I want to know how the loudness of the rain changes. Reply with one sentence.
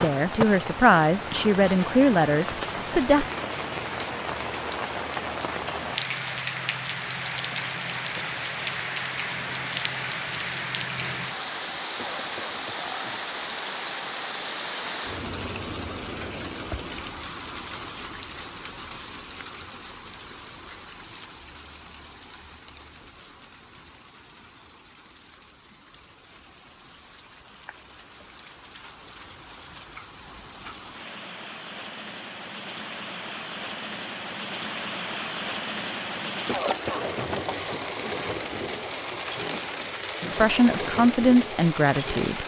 The loudness of the rain goes down, then up.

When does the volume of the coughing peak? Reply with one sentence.
The volume of the coughing peaks at 37 seconds.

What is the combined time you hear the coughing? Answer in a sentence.
The coughing can be heard for 2 seconds in total.